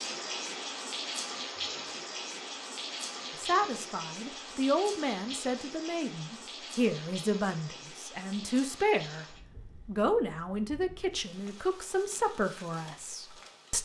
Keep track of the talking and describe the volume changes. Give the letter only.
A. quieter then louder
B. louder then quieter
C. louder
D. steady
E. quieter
D.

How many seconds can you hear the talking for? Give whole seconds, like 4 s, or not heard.
10 s.